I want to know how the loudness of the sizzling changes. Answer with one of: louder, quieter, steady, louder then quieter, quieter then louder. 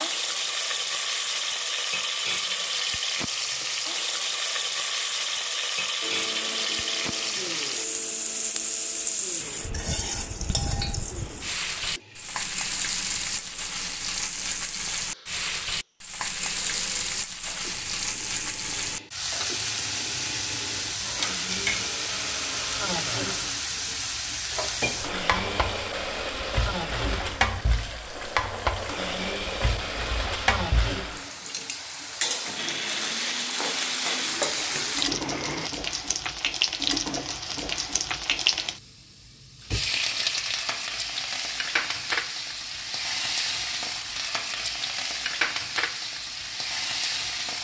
steady.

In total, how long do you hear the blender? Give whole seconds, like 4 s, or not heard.
30 s.